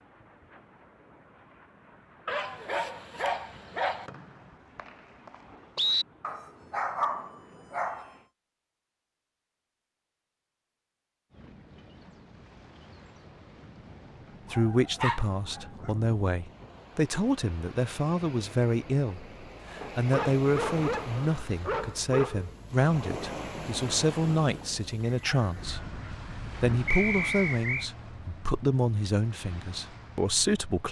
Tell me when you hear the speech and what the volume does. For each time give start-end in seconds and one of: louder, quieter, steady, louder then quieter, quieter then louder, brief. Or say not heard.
14.5-30.8 steady.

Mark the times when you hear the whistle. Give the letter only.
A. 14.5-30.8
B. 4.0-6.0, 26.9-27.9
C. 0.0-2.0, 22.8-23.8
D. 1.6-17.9
B.